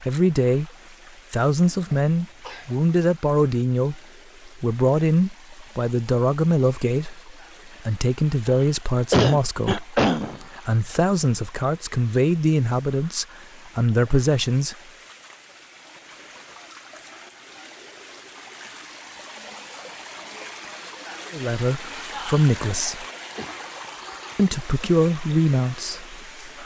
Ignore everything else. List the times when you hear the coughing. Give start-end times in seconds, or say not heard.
1.6-2.7, 9.1-10.4, 22.5-23.7.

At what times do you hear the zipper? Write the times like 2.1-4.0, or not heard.
not heard.